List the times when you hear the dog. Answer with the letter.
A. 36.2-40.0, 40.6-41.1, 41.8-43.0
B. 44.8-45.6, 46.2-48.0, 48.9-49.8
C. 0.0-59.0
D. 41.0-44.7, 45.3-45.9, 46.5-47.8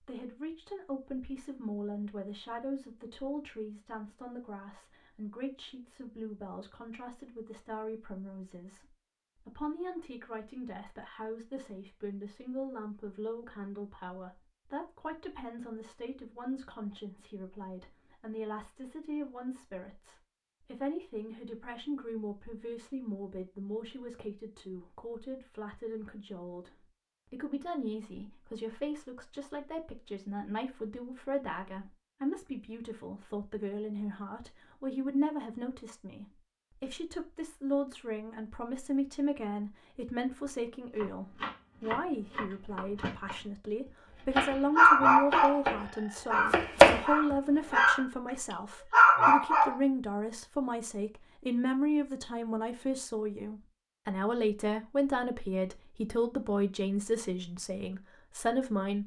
B.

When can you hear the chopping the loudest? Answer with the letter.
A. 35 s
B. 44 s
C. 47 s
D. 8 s
C.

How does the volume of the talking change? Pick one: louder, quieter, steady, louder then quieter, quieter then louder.
louder.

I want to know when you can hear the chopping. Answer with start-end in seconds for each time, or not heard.
41.0-44.7, 45.3-45.9, 46.5-47.8.